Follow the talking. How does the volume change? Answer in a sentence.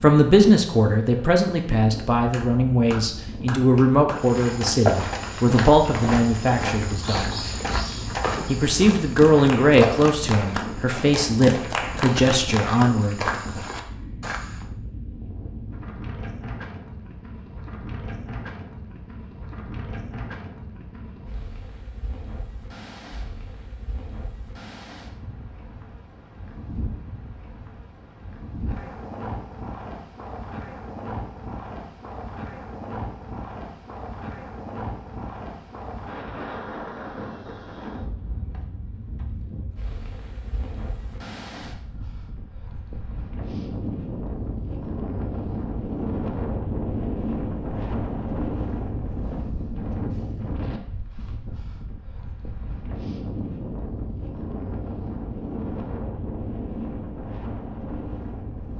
The volume of the talking stays about the same.